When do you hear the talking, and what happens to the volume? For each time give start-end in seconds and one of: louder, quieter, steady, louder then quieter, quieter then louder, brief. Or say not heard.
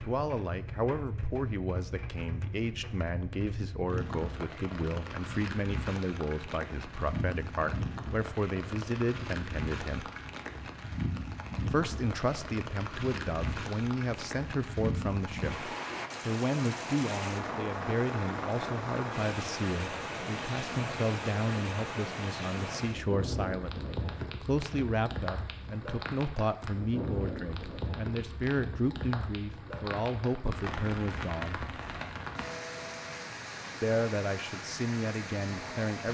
0.0-10.1 steady
11.7-31.6 steady
33.8-36.1 brief.